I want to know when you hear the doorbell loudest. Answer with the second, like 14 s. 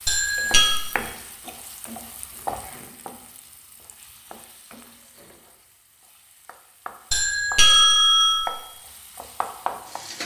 8 s.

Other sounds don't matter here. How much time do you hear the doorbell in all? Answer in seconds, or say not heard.
2 s.